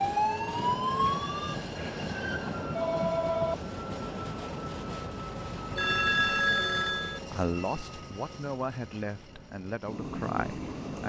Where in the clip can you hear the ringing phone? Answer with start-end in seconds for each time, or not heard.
1.8-3.5, 5.8-7.2.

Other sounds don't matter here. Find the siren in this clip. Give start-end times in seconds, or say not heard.
0.0-1.6.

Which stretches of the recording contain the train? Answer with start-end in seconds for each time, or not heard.
0.0-11.0.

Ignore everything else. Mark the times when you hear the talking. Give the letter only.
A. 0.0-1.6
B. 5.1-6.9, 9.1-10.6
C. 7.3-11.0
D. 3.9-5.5
C.